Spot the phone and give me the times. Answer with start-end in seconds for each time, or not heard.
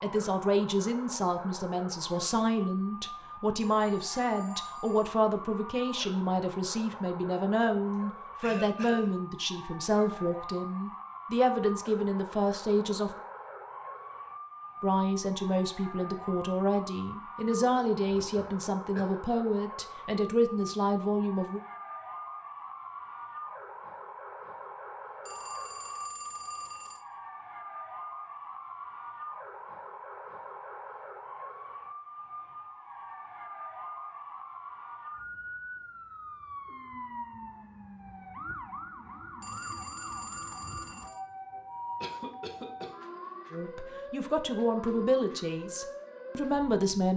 3.6-5.2, 25.2-27.0, 39.4-41.2.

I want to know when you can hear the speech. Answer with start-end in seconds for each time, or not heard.
0.0-13.1, 14.8-21.6, 43.5-47.1.